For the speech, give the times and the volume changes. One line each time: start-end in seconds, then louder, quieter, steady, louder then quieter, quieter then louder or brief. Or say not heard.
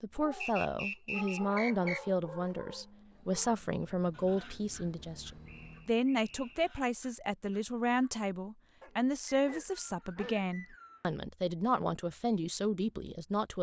0.0-13.5 steady.